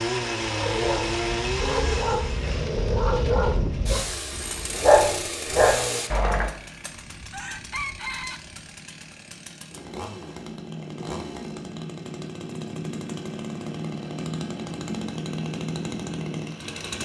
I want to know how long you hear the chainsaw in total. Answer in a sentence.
You can hear the chainsaw for 17 seconds altogether.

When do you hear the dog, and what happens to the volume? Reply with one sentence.
You can hear the dog from 0.6 to 6.5 s, getting louder.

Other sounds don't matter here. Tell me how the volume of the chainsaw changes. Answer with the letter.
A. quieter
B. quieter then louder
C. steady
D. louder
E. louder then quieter
B.